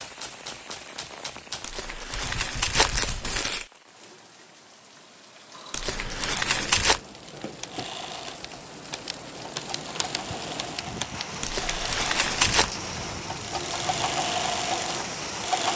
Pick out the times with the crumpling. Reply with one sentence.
The crumpling can be heard from 1.6 to 3.6 s, from 5.7 to 7.0 s and from 11.4 to 12.7 s.